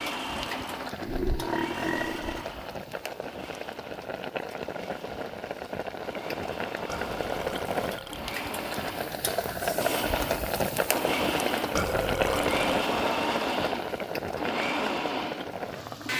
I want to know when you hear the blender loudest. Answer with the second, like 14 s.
13 s.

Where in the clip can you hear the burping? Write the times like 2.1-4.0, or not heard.
1.0-2.5, 6.8-8.2, 11.8-12.7.